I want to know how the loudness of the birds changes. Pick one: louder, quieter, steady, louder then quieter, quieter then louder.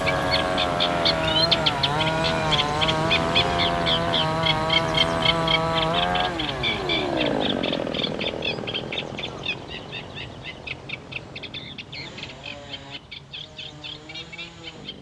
quieter.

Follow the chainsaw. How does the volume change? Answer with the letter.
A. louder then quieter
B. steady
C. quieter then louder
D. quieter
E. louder
D.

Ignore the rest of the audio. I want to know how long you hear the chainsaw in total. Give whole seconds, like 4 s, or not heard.
15 s.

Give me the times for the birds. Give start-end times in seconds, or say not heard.
0.0-14.9.